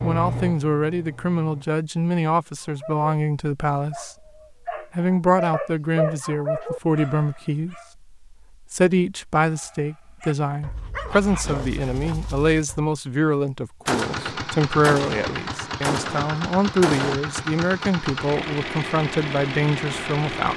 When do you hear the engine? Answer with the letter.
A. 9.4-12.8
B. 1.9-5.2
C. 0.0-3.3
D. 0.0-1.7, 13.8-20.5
D.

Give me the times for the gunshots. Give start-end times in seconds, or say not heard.
13.8-17.1.